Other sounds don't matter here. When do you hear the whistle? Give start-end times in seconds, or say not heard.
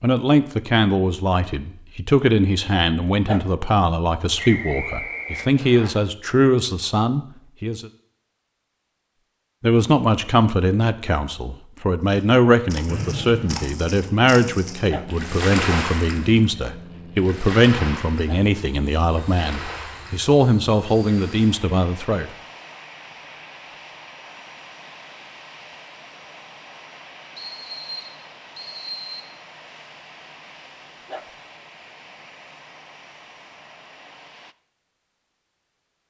4.3-5.9, 12.8-13.7, 27.4-29.2.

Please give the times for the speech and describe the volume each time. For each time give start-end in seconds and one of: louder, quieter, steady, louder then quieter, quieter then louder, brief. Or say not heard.
0.0-7.9 steady
9.6-22.3 steady.